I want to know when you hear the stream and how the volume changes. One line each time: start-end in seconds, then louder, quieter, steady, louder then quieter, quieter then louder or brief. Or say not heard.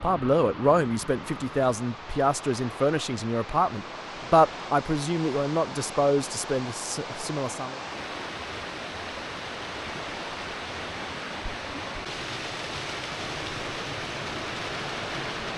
0.0-15.5 louder.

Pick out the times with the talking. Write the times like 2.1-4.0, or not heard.
0.0-7.8.